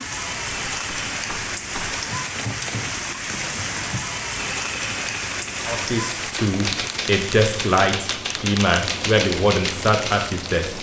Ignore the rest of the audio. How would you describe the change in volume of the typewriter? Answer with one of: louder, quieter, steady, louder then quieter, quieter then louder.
louder.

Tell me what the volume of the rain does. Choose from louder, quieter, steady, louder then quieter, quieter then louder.
quieter.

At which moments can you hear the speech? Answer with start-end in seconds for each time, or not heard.
5.7-10.7.